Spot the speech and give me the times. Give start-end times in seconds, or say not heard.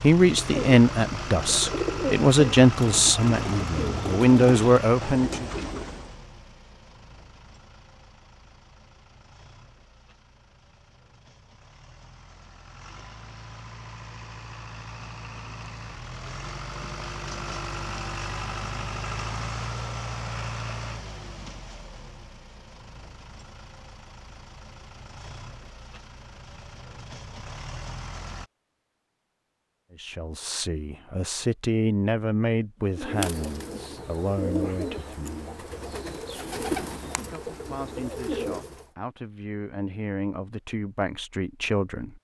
0.0-5.5, 29.9-35.6, 37.1-42.1.